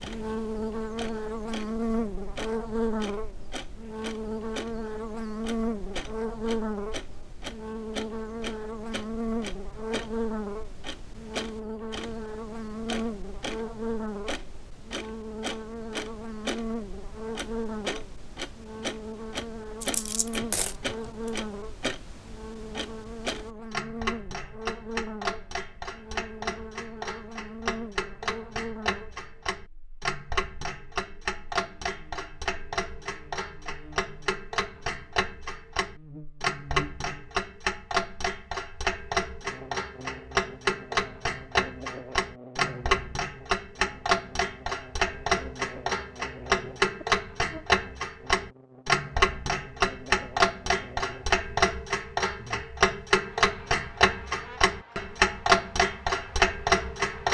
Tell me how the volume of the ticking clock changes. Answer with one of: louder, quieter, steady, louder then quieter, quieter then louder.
louder.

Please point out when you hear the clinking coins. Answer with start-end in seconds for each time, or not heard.
19.8-21.3.